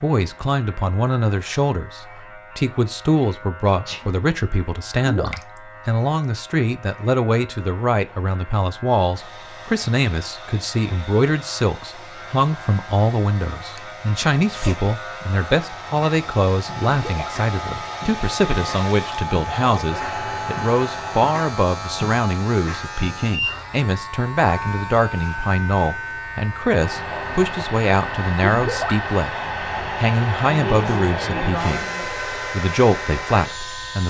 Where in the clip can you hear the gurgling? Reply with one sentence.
You can hear the gurgling from 5.0 to 5.6 s, from 16.9 to 17.4 s and from 28.4 to 29.1 s.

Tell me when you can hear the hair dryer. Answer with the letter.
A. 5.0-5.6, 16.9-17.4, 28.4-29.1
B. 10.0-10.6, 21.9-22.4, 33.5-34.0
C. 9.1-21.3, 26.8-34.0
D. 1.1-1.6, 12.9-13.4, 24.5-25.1
C.